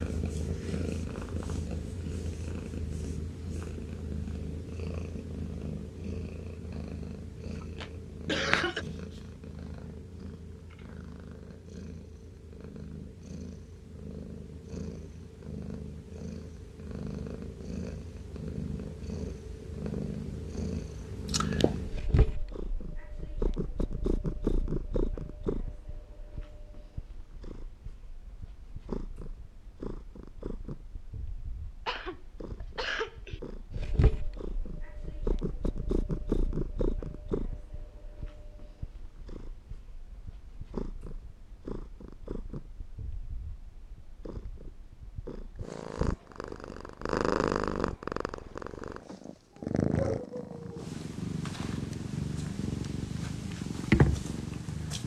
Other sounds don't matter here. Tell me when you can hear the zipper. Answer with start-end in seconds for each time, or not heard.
not heard.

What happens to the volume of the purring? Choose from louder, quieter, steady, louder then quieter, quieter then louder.
louder.